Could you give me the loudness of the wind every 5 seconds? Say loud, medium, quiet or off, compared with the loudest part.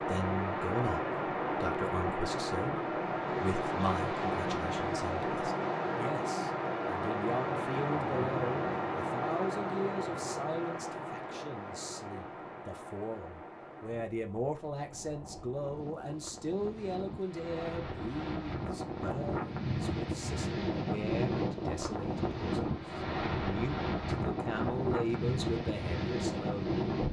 loud, loud, medium, medium, loud, loud.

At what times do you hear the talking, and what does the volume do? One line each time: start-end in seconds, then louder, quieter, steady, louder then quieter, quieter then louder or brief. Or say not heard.
0.0-26.8 steady.